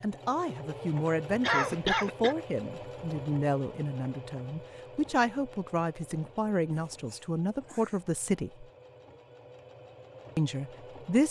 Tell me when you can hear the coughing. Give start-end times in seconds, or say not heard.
1.4-2.4, 6.7-8.0.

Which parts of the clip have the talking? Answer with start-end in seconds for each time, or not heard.
0.0-8.7, 10.3-11.2.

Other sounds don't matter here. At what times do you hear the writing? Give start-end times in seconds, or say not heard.
not heard.